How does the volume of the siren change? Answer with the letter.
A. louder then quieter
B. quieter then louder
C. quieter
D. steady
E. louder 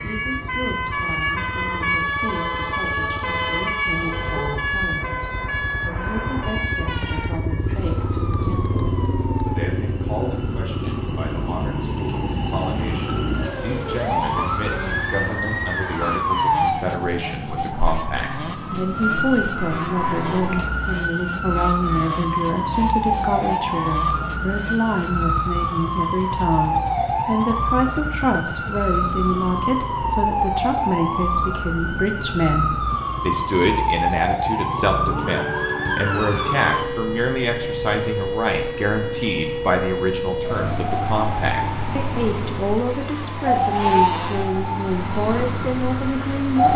D.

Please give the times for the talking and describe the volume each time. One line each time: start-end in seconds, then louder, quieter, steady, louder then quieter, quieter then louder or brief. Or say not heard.
0.0-46.7 louder.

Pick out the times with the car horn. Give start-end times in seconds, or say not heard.
3.9-4.6.